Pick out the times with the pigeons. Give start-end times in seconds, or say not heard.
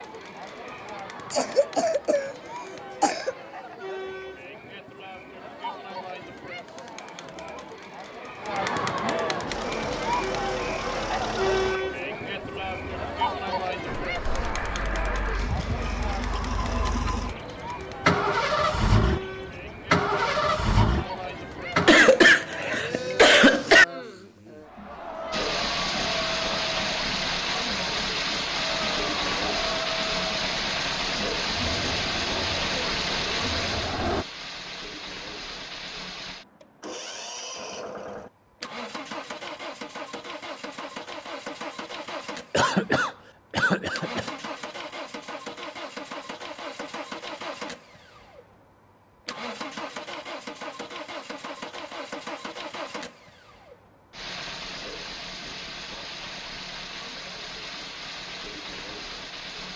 not heard.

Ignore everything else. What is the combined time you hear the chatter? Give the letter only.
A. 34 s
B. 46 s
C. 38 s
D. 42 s
A.